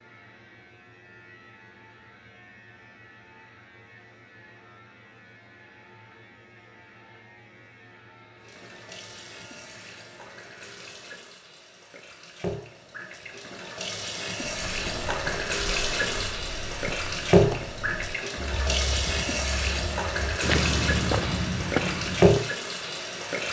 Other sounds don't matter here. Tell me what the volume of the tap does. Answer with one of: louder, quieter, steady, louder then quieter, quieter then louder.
louder.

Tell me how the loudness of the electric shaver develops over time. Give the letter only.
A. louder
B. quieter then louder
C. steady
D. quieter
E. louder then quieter
C.